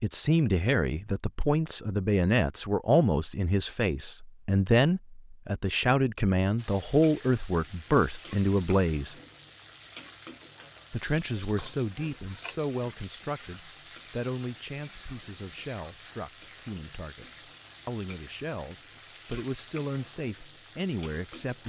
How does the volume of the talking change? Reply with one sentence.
The loudness of the talking goes down.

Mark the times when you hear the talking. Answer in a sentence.
You can hear the talking from 0.0 to 9.2 s and from 10.9 to 21.6 s.